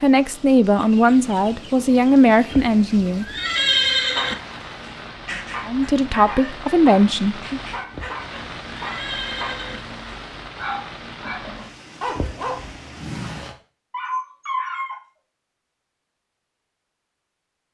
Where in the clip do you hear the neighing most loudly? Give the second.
4 s.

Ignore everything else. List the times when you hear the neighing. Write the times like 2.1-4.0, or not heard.
2.5-4.3, 7.9-9.8, 12.2-12.8.